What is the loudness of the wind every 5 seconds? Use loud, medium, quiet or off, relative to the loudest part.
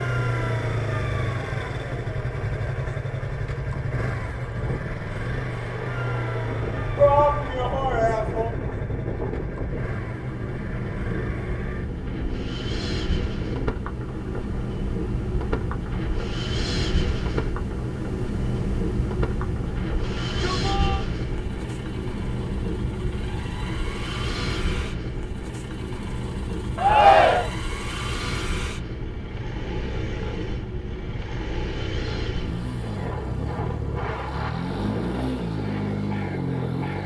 medium, medium, loud, loud, loud, medium, medium, medium.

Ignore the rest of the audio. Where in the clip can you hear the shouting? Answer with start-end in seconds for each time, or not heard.
7.0-8.5, 20.1-21.1, 26.8-27.5.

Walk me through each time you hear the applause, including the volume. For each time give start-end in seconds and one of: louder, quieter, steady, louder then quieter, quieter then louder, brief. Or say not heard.
not heard.